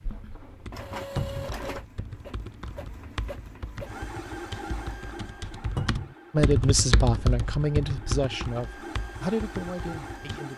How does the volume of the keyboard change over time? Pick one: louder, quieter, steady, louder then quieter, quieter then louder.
louder then quieter.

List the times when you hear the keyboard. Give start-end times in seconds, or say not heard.
0.0-10.4.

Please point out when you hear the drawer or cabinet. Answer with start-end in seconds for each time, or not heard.
1.1-1.6, 5.8-6.2.